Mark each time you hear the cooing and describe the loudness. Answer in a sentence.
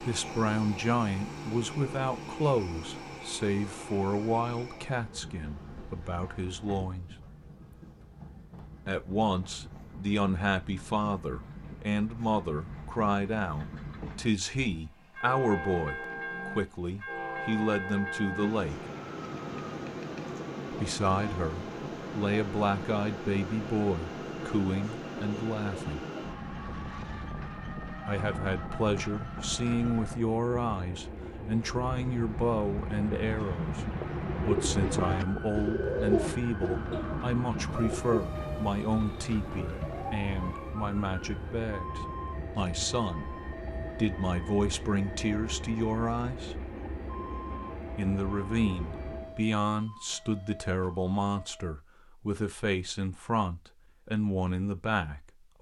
You can hear the cooing from 31.6 to 40.6 s, getting louder then quieter.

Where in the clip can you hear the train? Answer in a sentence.
The train can be heard from 0.0 to 49.4 s.